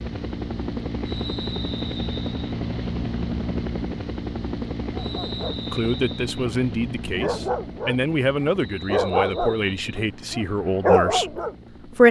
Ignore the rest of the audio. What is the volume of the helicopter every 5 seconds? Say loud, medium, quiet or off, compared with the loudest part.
loud, medium, quiet.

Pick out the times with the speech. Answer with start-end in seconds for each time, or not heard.
5.7-12.0.